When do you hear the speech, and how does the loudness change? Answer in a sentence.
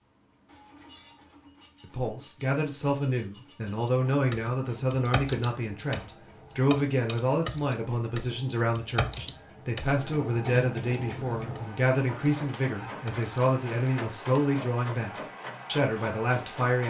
The speech can be heard from 1.8 to 16.8 s, at a steady volume.